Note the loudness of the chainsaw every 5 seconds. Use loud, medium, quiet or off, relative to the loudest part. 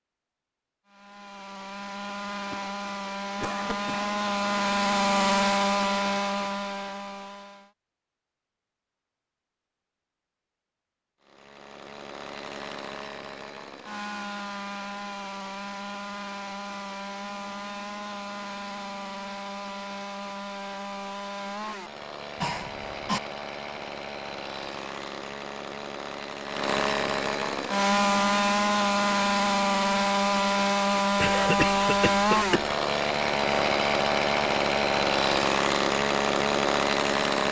medium, loud, quiet, quiet, quiet, loud, loud, loud.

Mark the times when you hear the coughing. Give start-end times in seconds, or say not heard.
2.5-4.1, 22.4-23.2, 31.2-32.8.